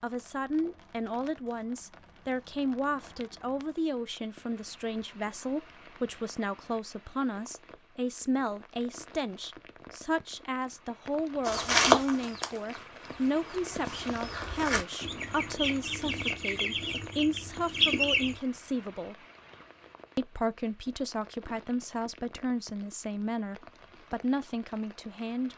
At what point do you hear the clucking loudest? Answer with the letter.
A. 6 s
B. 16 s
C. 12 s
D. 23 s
C.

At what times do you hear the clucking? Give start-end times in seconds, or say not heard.
11.4-18.4.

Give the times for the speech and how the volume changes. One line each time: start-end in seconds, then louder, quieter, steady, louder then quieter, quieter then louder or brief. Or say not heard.
0.0-19.1 steady
20.1-25.5 steady.